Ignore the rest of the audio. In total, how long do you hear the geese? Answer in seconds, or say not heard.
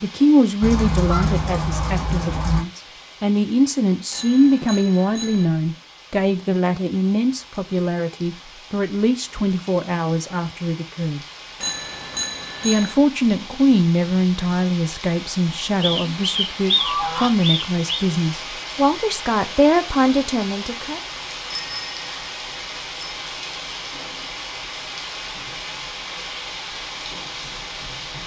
4 s.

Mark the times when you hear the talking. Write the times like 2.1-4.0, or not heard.
0.0-11.2, 12.6-21.0.